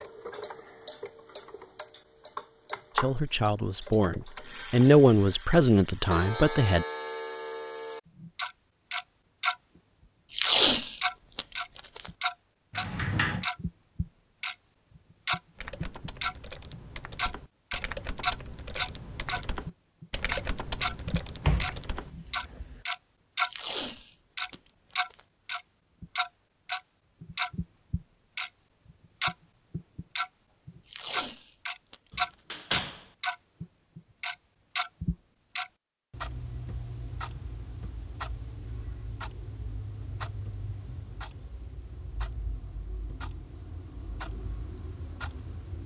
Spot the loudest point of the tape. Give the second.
11 s.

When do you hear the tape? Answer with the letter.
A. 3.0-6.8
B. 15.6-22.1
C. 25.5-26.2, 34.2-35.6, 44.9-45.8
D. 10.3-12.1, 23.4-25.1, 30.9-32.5
D.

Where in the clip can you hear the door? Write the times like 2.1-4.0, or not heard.
12.7-13.4, 21.4-22.8, 32.1-33.0.